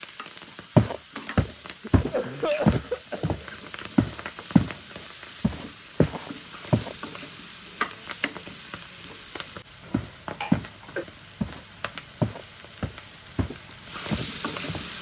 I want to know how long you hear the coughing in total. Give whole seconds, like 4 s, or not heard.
3 s.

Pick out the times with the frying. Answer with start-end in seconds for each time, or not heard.
0.0-14.9.